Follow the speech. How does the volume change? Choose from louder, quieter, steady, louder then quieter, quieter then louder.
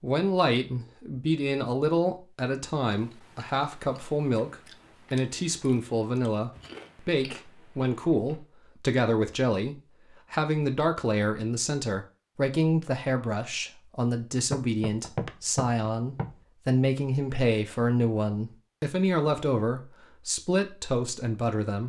steady.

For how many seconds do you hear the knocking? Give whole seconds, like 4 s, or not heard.
2 s.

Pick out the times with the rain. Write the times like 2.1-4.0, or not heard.
not heard.